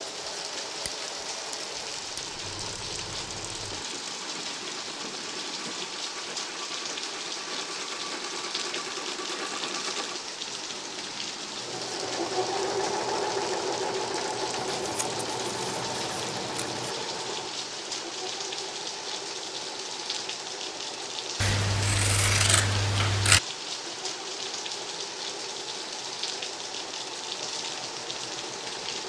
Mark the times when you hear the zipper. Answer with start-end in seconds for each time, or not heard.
not heard.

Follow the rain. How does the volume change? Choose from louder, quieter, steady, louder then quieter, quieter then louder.
steady.